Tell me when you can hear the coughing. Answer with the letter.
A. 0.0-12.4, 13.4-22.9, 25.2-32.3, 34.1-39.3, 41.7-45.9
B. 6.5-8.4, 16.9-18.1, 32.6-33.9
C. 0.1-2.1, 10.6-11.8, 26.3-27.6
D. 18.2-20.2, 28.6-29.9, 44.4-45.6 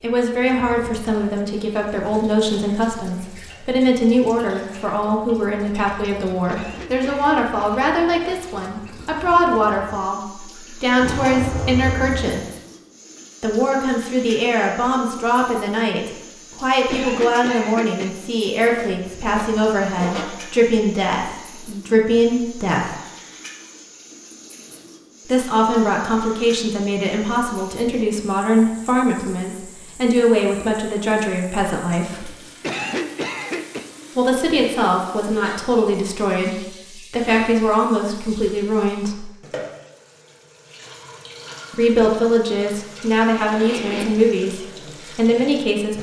B.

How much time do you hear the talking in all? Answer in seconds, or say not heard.
38 s.